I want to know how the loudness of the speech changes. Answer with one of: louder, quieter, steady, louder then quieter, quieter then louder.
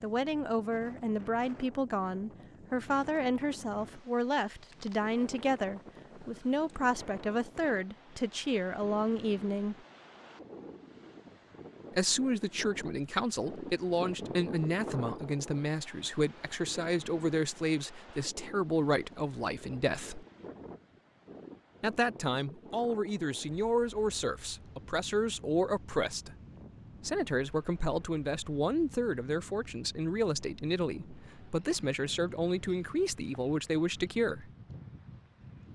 steady.